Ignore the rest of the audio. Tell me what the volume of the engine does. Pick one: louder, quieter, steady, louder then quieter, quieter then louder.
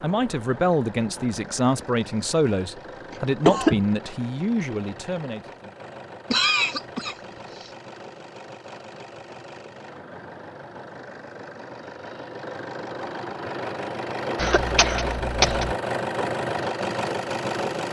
louder.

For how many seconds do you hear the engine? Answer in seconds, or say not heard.
18 s.